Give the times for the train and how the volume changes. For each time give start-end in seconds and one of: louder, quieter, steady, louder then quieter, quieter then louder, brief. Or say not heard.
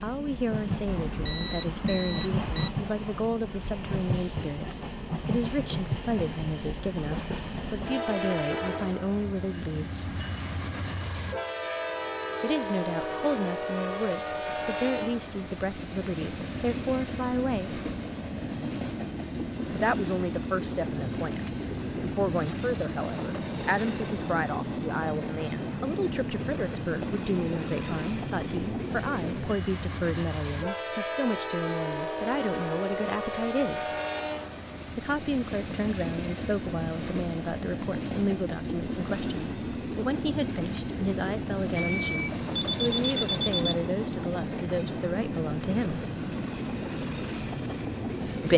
0.0-48.5 steady.